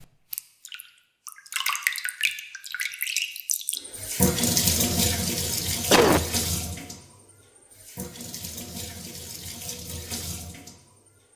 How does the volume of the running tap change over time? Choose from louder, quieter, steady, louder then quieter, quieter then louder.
quieter.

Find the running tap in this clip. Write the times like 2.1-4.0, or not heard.
0.0-11.3.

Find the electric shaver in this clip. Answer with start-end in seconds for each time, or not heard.
not heard.